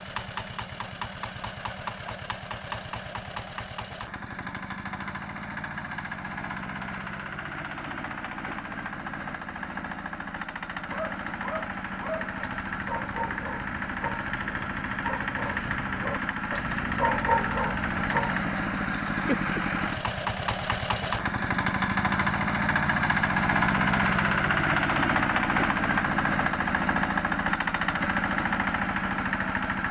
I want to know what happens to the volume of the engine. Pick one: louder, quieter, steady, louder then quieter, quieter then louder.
louder.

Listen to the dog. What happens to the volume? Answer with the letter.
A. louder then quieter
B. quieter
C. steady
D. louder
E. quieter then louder
D.